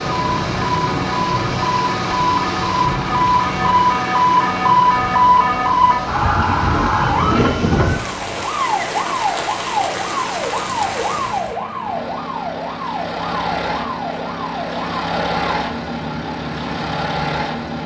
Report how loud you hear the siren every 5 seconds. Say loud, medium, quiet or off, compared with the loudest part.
loud, loud, medium, quiet.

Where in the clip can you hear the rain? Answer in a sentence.
The rain can be heard from 0.0 to 11.6 s.